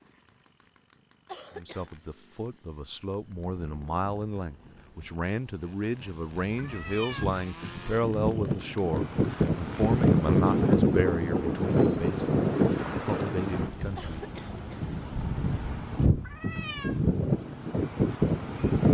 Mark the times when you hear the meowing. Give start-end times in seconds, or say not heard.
6.5-7.3, 16.2-17.0.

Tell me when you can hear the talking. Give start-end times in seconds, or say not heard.
1.6-14.2.